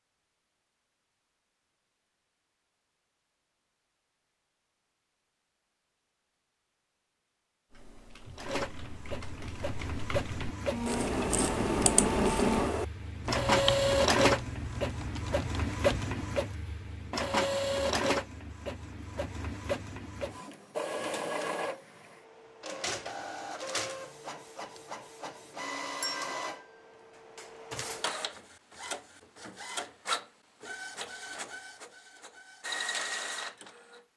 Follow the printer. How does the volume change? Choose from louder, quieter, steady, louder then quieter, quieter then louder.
quieter.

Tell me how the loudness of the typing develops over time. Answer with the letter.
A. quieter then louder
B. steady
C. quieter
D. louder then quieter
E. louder
D.